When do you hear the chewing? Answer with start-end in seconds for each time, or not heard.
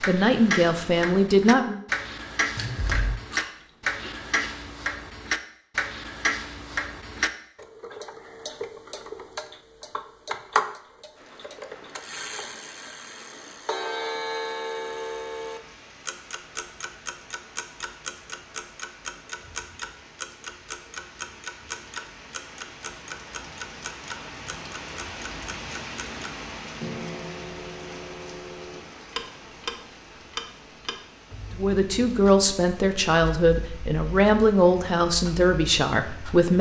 2.5-4.3.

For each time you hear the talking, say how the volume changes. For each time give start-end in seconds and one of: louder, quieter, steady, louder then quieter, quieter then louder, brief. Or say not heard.
0.1-1.8 brief
31.6-36.5 steady.